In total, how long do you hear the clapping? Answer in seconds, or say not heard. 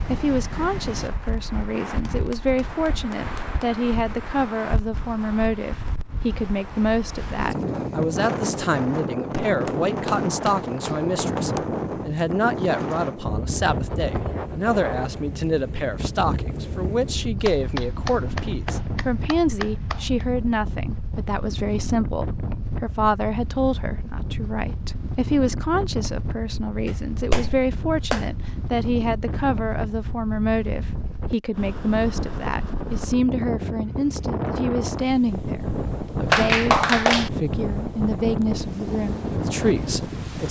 9 s.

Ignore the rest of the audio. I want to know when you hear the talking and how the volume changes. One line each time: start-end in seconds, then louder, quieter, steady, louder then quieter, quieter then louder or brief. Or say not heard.
0.1-40.4 steady.